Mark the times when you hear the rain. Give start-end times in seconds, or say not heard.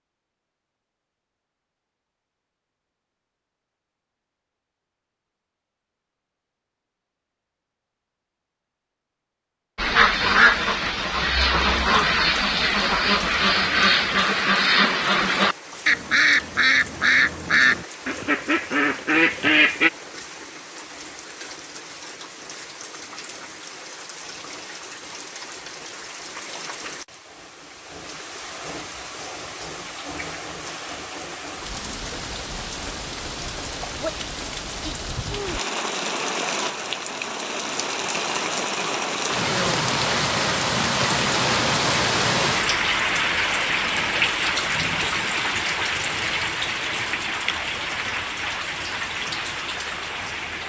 10.0-50.6.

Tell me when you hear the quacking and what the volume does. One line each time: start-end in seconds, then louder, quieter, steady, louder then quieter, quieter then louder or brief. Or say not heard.
9.8-19.9 steady.